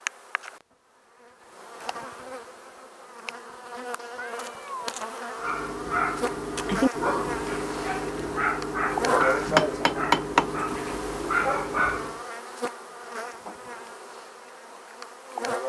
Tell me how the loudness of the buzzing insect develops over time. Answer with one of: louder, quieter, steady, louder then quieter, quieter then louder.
louder then quieter.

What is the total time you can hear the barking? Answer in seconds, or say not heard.
7 s.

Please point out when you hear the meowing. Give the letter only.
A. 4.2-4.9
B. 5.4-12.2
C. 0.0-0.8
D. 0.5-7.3
A.